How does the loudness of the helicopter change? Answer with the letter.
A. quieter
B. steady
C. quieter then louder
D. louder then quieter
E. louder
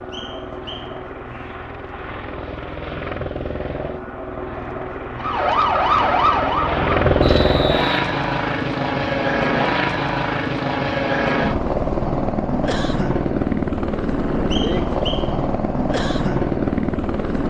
E.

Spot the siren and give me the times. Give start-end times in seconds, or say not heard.
5.2-7.6.